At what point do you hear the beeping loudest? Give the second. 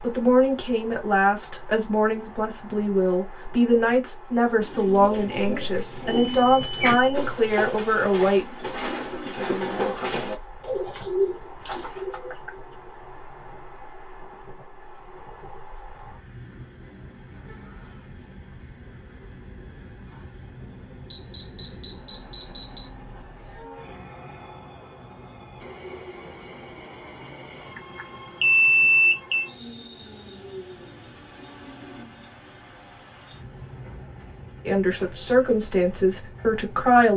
29 s.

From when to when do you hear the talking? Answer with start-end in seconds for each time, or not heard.
0.0-8.4, 34.6-37.1.